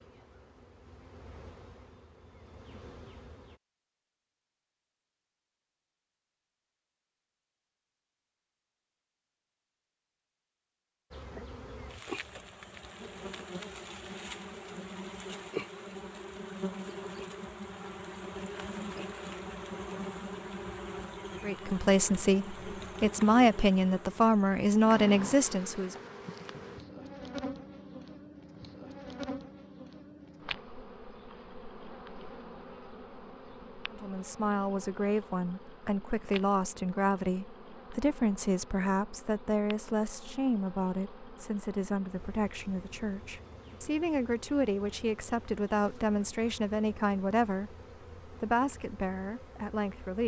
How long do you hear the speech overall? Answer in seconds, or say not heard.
21 s.